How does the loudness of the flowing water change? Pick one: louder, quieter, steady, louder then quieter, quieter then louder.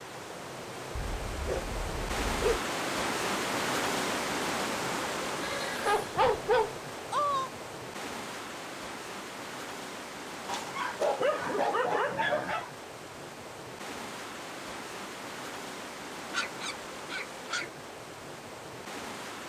quieter.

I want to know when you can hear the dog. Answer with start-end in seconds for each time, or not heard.
0.9-2.6, 5.8-7.5, 10.4-12.7, 16.3-17.7.